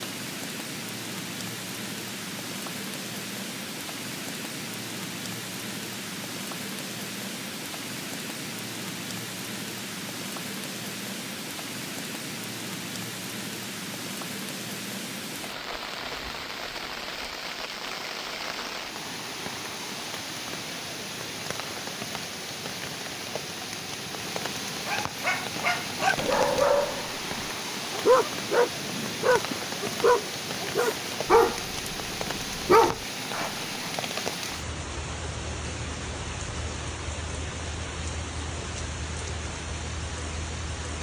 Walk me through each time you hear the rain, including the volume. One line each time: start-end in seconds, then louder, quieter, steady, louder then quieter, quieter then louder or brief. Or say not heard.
0.0-40.9 steady.